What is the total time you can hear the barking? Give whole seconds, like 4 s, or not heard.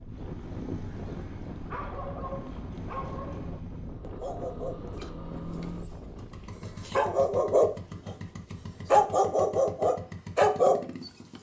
10 s.